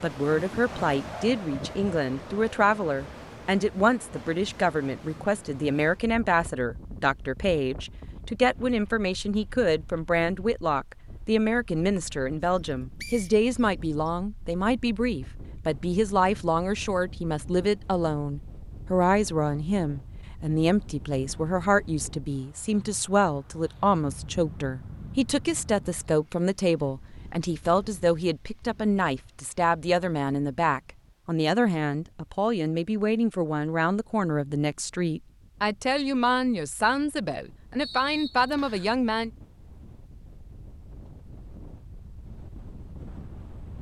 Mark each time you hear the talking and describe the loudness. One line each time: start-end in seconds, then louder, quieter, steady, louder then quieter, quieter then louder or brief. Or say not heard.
0.0-39.3 steady.